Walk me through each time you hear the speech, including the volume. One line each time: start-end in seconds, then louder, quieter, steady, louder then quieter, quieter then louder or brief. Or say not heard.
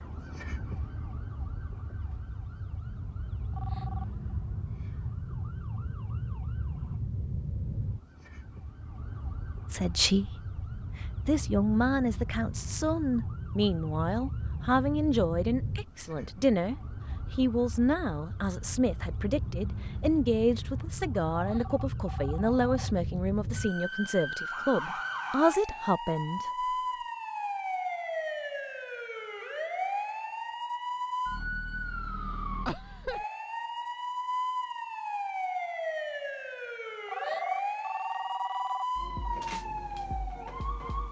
9.7-26.6 steady.